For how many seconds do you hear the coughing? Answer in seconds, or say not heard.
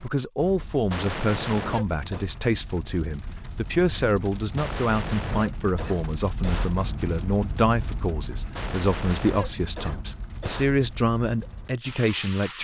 6 s.